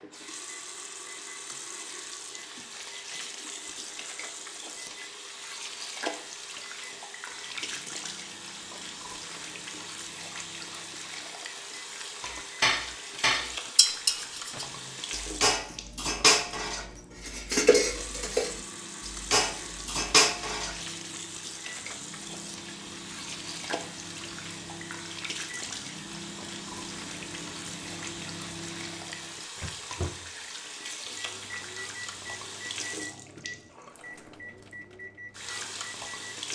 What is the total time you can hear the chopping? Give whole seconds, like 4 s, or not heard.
not heard.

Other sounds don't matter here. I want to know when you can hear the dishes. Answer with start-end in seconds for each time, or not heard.
12.2-20.8.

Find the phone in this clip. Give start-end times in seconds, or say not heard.
not heard.